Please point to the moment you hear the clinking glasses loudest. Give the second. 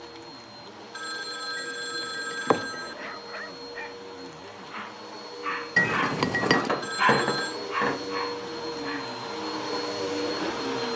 6 s.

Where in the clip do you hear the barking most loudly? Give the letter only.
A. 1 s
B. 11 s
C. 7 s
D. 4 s
C.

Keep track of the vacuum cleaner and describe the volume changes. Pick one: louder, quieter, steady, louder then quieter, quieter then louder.
louder.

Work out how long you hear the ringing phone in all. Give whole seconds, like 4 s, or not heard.
3 s.